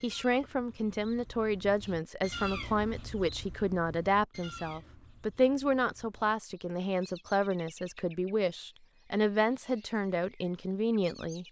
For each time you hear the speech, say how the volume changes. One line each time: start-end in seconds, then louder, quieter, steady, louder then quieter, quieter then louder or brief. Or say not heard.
0.0-11.4 steady.